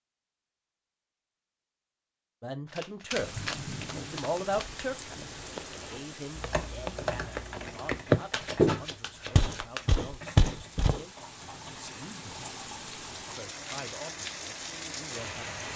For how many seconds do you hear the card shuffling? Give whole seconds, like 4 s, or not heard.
4 s.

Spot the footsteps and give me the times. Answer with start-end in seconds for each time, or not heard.
5.1-11.0.